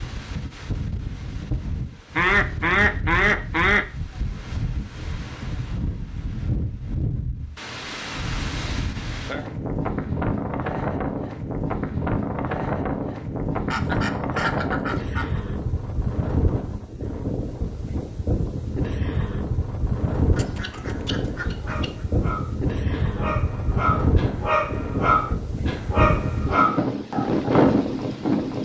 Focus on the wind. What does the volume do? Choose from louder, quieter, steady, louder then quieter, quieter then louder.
louder.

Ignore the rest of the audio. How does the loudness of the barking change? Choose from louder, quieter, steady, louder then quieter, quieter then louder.
louder.